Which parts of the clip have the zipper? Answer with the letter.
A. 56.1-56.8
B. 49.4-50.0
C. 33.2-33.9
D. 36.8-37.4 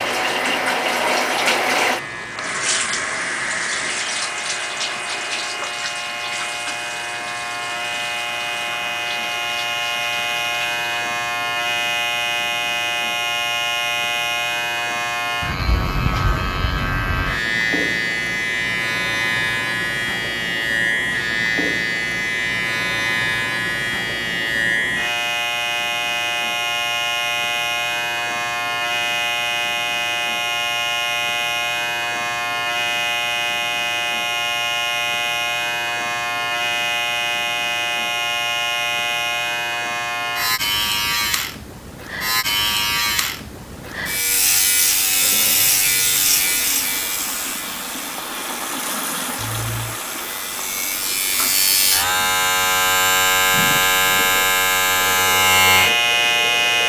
B.